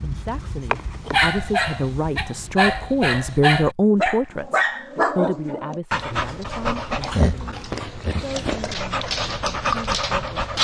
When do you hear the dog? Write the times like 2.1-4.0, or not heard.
0.0-10.5.